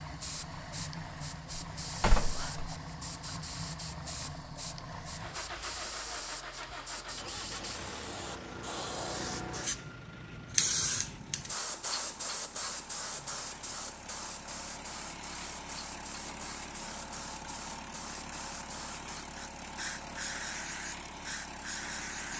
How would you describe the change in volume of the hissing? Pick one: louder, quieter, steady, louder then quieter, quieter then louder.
louder then quieter.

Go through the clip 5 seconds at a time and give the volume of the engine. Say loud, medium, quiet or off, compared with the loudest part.
loud, loud, medium, loud, loud.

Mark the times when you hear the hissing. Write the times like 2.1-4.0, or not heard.
0.0-22.3.